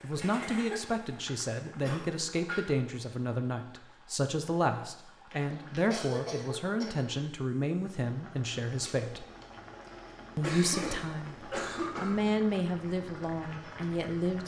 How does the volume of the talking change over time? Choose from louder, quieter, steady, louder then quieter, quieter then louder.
steady.